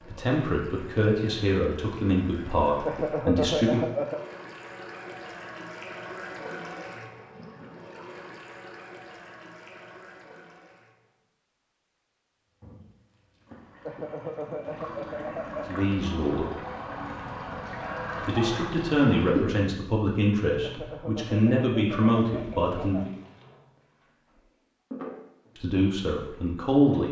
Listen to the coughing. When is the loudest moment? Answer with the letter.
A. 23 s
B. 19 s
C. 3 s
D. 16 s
C.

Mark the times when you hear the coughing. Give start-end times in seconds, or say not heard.
2.9-4.2, 13.8-15.8, 20.6-23.1.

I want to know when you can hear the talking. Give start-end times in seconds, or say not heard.
0.0-3.8, 15.7-16.4, 18.2-23.1, 25.6-27.0.